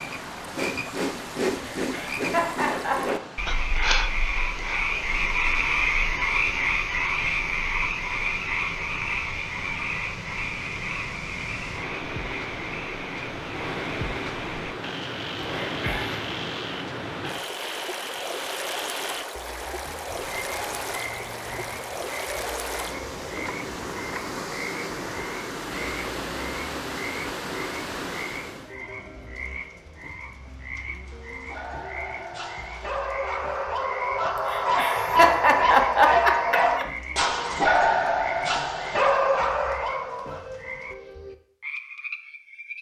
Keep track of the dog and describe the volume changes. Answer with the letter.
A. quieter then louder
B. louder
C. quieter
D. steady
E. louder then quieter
B.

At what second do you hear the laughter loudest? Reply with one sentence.
The volume of the laughter peaks at 36 seconds.